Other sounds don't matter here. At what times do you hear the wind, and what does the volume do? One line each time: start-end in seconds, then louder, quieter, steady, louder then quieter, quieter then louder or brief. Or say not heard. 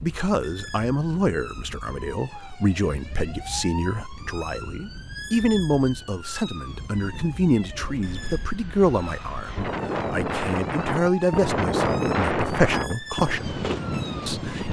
0.0-14.6 louder.